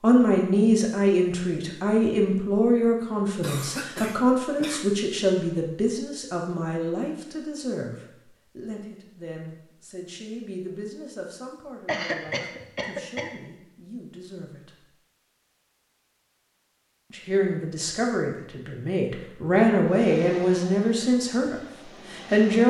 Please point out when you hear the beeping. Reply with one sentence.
The beeping can't be heard in this clip.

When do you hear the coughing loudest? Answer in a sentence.
The loudest moment of the coughing is at 12 seconds.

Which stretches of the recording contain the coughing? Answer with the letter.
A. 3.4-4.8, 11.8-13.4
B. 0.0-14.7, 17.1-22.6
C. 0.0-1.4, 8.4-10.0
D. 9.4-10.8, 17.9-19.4
A.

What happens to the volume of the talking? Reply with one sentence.
The volume of the talking goes down, then up.